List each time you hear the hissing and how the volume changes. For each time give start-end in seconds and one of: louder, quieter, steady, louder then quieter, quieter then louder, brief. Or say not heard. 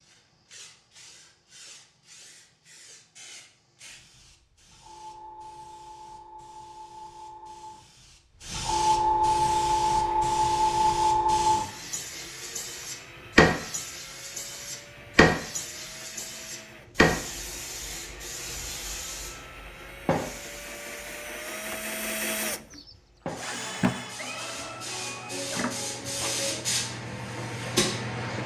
0.0-28.4 louder then quieter.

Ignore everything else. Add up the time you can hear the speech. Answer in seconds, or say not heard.
not heard.